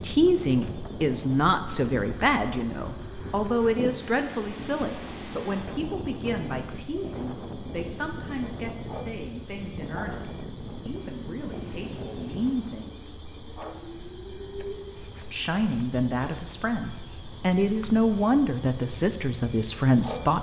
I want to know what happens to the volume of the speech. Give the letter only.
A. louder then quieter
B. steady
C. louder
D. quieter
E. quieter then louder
E.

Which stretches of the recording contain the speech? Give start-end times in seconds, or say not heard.
0.0-13.2, 15.3-20.3.